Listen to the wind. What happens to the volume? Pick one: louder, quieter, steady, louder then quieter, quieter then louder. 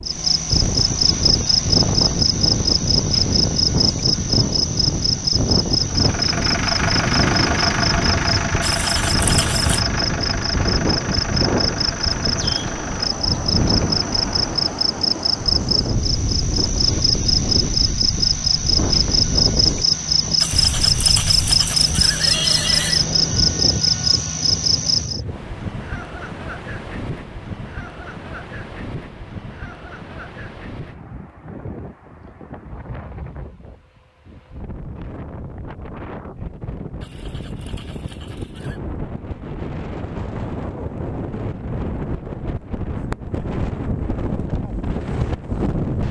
quieter then louder.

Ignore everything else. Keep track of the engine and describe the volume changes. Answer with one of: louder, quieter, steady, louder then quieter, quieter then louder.
quieter.